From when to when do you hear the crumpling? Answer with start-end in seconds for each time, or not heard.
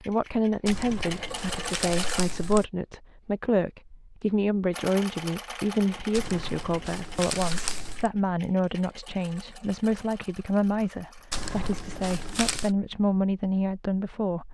0.7-2.6, 6.1-8.1, 11.3-12.8.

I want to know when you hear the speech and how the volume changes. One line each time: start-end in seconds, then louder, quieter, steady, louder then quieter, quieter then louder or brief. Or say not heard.
0.0-14.4 steady.